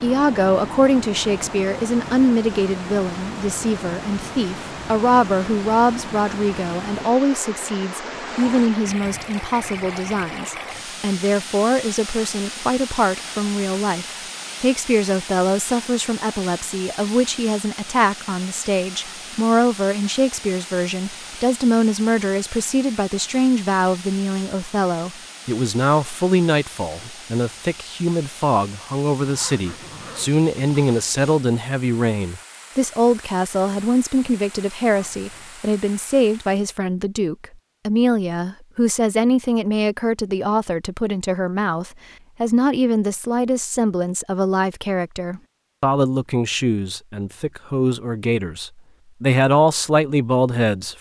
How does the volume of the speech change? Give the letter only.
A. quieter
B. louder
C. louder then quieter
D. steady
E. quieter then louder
D.